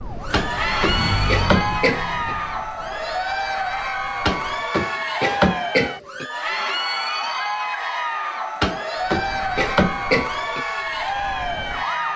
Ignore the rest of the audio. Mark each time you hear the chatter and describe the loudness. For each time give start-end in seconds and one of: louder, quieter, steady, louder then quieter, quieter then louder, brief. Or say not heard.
0.1-12.1 steady.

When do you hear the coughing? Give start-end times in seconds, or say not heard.
0.3-2.4, 4.2-6.2, 8.6-10.7.